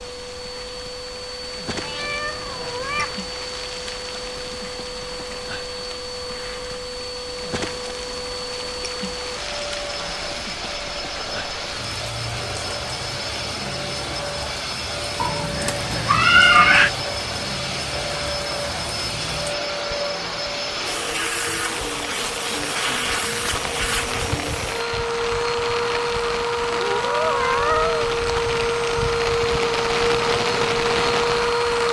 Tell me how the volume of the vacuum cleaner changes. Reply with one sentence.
The loudness of the vacuum cleaner goes up.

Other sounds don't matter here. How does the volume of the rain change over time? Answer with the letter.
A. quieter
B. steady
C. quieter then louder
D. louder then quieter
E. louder
E.